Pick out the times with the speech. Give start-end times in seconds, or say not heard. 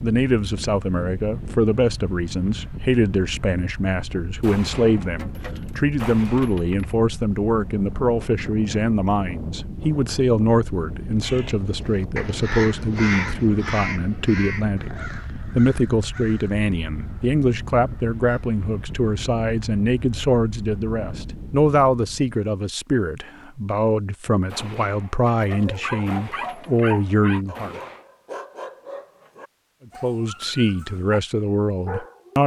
0.0-27.8, 30.0-32.4.